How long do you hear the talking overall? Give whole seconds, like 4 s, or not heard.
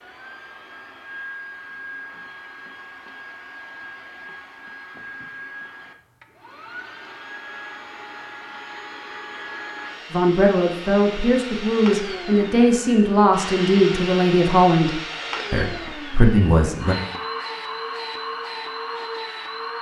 7 s.